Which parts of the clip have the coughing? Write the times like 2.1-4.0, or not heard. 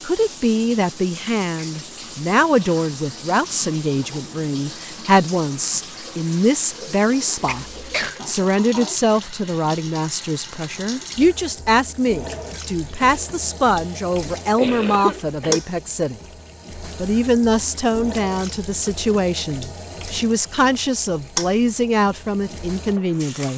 7.5-8.2, 14.2-15.6.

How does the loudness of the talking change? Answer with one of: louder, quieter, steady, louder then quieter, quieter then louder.
steady.